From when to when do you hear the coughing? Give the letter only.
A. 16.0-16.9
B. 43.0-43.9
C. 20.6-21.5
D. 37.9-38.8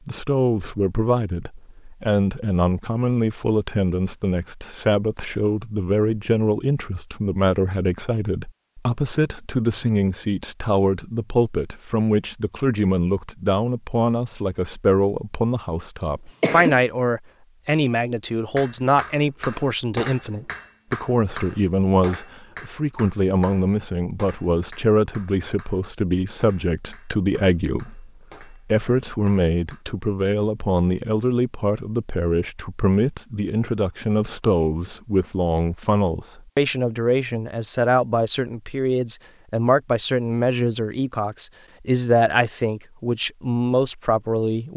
A.